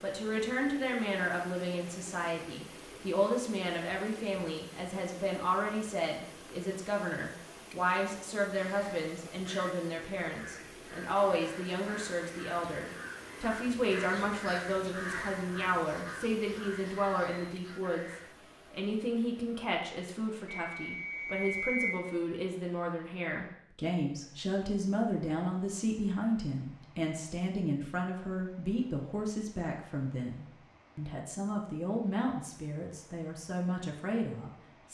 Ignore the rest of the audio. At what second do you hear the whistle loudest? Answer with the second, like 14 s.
22 s.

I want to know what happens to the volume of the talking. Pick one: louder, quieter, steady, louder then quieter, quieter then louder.
steady.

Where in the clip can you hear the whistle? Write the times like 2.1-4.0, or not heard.
20.4-22.0.